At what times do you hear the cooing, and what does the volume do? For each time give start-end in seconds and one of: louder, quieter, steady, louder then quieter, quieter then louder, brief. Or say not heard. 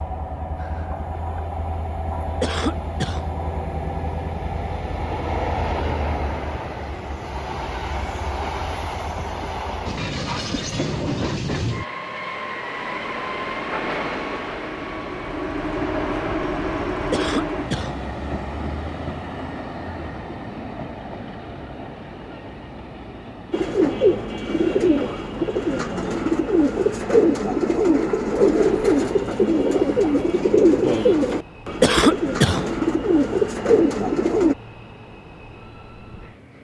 23.5-34.5 steady.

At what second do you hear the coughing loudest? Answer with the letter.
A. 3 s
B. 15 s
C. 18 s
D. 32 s
D.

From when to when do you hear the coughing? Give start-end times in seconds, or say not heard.
2.4-3.2, 17.1-17.9, 31.8-32.6.